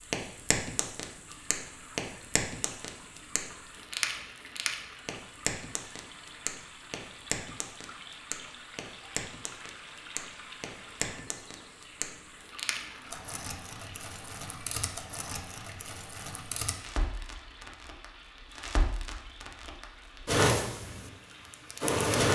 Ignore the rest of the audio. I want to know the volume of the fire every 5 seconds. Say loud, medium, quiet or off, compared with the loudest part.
medium, quiet, quiet, quiet, loud.